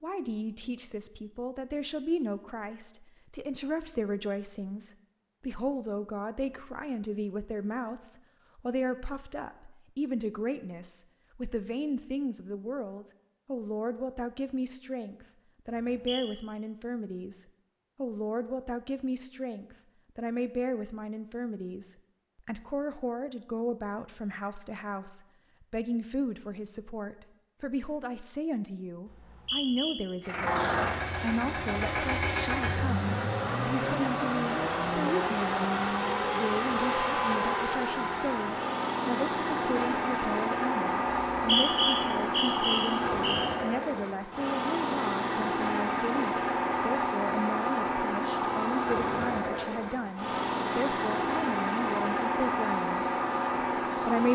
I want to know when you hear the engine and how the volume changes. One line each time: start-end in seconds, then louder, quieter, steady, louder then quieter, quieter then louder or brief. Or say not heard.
30.2-54.3 steady.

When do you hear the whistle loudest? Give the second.
42 s.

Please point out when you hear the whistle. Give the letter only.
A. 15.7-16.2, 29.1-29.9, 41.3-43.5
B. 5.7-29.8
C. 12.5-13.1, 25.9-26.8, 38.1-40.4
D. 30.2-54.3
A.